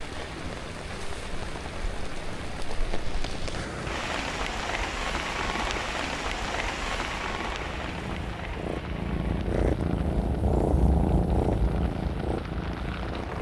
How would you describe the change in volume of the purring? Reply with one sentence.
The volume of the purring goes up.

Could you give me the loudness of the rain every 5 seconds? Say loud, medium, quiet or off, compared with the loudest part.
loud, loud, medium.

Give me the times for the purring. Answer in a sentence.
The purring can be heard from 0.0 to 13.3 s.